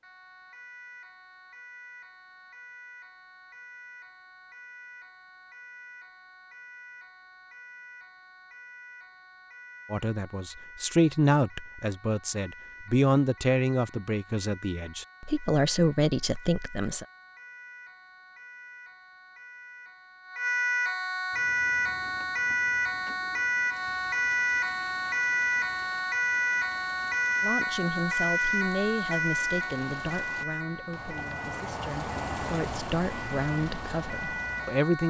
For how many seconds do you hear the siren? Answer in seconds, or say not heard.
35 s.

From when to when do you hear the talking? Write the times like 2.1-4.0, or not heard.
9.9-17.1, 27.4-35.0.